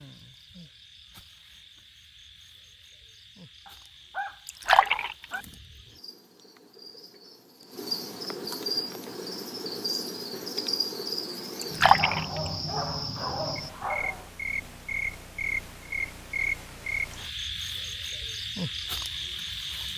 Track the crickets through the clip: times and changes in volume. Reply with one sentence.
You can hear the crickets from 0.0 to 19.9 s, getting louder.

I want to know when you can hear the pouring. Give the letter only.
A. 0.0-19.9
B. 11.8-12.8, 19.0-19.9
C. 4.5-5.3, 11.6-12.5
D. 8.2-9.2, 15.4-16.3
C.